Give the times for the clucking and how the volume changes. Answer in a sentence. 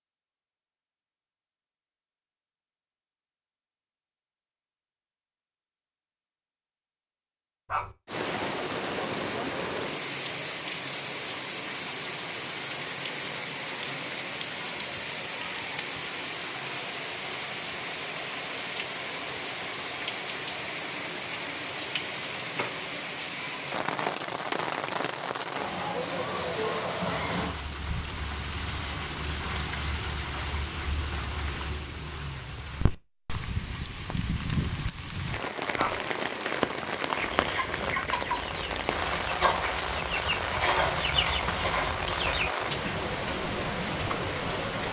You can hear the clucking from 37.1 to 42.5 s, getting quieter then louder.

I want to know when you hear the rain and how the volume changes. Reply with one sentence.
You can hear the rain from 8.1 to 44.8 s, at a steady volume.